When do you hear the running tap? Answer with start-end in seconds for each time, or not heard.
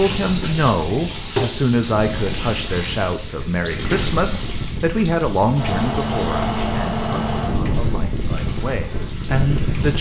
0.0-9.9.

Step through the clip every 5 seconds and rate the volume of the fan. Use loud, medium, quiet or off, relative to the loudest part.
medium, loud.